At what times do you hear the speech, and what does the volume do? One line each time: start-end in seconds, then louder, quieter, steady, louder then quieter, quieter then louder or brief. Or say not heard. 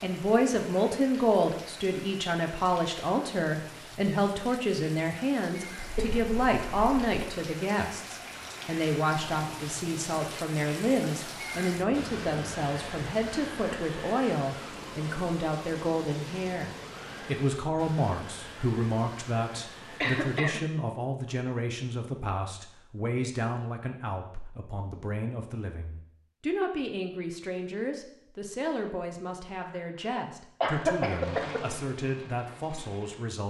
0.0-33.4 quieter.